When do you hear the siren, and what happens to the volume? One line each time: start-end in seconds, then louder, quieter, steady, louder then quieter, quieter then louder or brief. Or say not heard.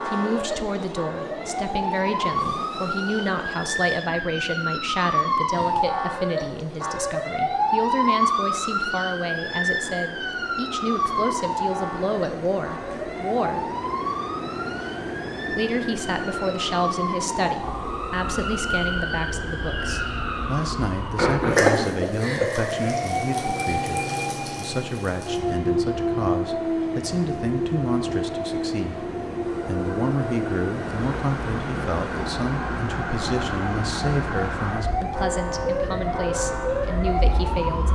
0.0-37.9 steady.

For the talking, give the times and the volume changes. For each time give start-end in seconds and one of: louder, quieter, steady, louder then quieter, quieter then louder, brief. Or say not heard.
0.1-13.7 steady
15.5-37.9 steady.